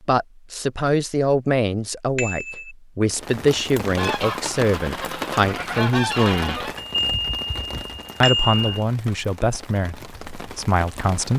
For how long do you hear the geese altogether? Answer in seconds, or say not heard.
3 s.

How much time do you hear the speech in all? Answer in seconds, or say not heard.
10 s.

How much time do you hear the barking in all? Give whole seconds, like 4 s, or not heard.
not heard.